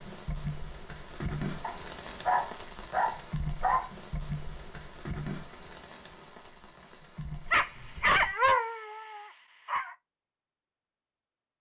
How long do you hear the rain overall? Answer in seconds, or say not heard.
8 s.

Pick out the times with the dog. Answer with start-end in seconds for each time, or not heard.
1.6-3.9, 7.5-9.9.